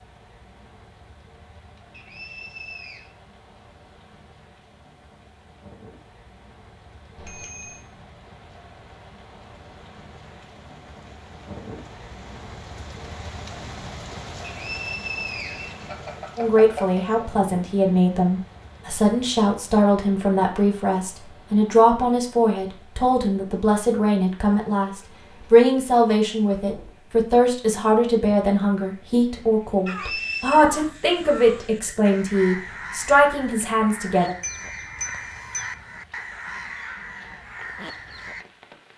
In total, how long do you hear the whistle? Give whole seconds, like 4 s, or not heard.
4 s.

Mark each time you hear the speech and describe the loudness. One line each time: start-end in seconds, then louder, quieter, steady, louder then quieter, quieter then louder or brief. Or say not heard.
16.4-34.4 steady.